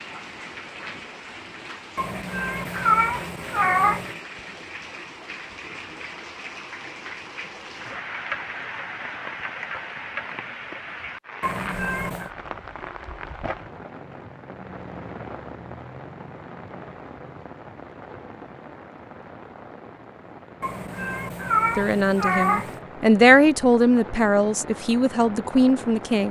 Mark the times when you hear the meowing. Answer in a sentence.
The meowing can be heard from 1.9 to 4.2 s, from 11.4 to 12.3 s and from 20.6 to 22.8 s.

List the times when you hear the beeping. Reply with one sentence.
You can't hear the beeping here.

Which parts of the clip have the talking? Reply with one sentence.
The talking can be heard from 21.8 to 26.2 s.